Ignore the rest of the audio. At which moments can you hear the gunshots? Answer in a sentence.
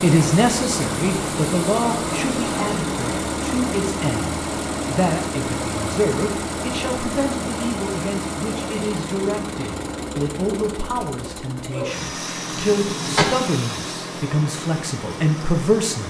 The gunshots can be heard from 12.4 to 13.6 s.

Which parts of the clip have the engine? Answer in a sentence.
The engine can be heard from 0.0 to 16.0 s.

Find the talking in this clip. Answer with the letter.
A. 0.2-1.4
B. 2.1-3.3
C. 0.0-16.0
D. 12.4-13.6
C.